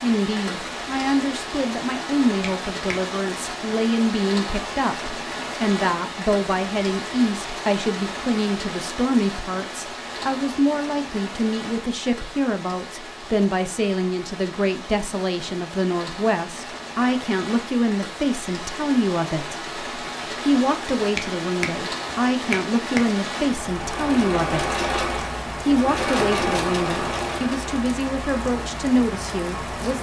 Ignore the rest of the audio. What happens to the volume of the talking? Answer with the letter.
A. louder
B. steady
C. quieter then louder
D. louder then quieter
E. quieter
B.